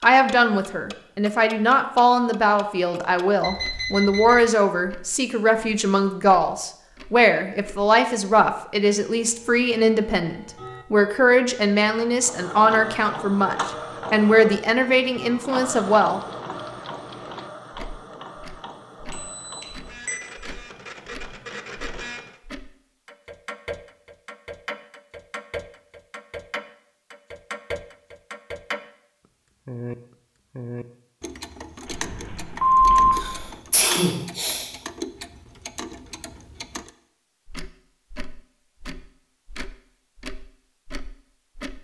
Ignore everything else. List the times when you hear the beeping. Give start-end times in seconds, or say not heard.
3.4-4.5, 19.1-20.2, 31.9-33.5.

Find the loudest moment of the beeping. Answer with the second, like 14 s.
33 s.